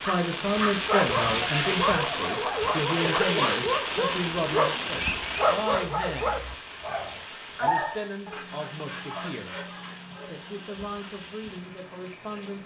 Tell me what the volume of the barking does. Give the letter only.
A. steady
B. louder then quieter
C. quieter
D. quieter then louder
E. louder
C.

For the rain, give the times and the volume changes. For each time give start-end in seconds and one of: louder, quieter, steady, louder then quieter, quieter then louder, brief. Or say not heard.
0.0-12.6 quieter.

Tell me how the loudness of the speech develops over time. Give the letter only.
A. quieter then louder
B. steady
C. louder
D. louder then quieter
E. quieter
E.